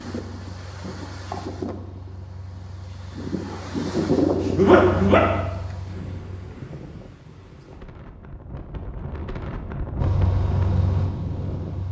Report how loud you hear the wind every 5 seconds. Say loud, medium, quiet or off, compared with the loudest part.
loud, medium, loud.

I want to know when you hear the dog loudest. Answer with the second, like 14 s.
5 s.